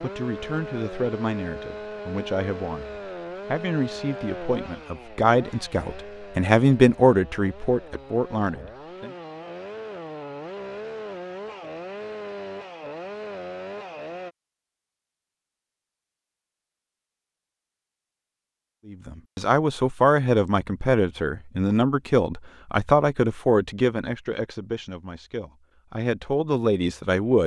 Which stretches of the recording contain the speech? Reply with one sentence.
The speech can be heard from 0.0 to 9.2 s and from 18.9 to 27.4 s.